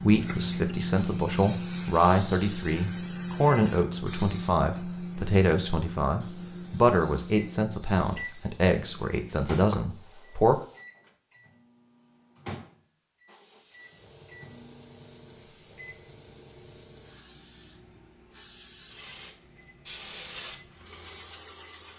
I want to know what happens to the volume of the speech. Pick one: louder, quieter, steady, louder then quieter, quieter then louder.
steady.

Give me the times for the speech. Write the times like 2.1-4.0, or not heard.
0.0-10.6.